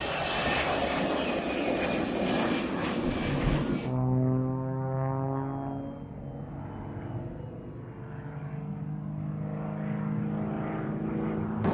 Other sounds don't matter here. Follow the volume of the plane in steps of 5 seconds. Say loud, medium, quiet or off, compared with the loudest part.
loud, medium, loud.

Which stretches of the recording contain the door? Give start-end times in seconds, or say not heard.
3.0-3.6.